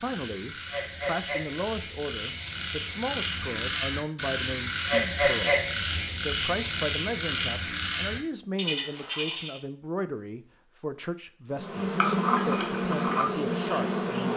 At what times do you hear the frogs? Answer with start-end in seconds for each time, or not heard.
0.0-9.6.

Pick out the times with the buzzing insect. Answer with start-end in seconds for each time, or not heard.
11.5-14.3.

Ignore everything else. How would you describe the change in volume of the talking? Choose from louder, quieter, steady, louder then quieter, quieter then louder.
steady.